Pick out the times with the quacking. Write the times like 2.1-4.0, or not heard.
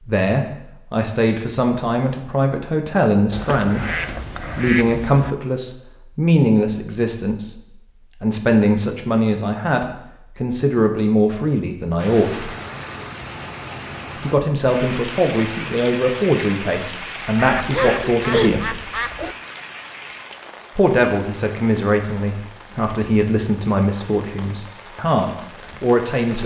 3.3-5.3, 17.4-19.4.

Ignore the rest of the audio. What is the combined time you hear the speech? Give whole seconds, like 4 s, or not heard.
22 s.